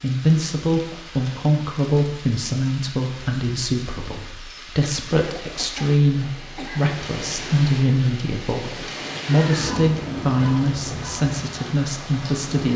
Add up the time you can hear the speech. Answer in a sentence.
The speech can be heard for 13 seconds in total.